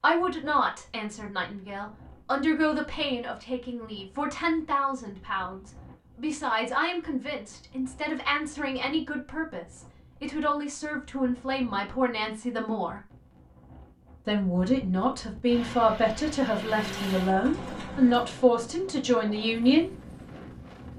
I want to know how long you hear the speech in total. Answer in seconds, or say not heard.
19 s.